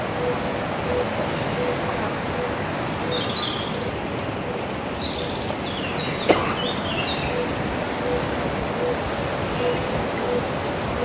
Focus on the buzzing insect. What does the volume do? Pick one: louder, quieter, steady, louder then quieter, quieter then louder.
steady.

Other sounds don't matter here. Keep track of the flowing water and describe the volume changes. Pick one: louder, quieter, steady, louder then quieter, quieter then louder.
steady.